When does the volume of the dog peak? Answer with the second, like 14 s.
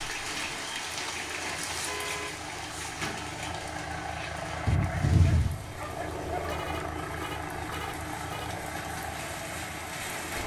5 s.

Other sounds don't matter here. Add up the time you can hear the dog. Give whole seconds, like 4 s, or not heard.
2 s.